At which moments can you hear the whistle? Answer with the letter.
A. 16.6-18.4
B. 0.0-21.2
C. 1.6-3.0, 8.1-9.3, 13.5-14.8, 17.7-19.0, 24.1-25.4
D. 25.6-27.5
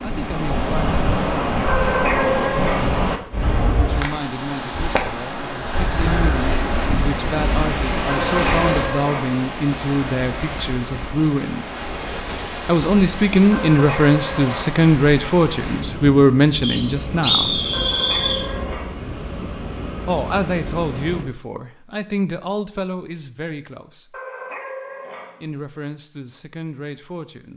A.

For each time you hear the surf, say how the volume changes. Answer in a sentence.
The surf can be heard from 0.0 to 21.2 s, getting quieter.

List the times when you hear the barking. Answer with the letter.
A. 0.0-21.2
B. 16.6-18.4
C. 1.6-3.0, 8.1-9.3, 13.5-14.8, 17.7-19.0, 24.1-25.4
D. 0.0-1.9
C.